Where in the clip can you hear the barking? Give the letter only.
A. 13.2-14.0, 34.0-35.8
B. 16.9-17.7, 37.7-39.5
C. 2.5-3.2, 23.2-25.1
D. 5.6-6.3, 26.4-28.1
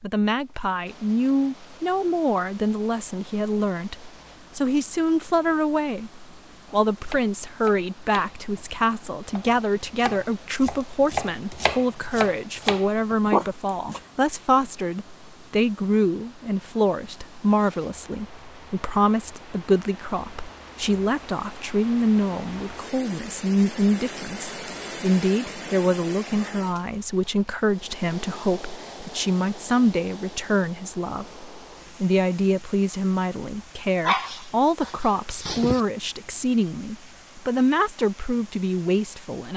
A.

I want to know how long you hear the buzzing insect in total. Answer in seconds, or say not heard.
not heard.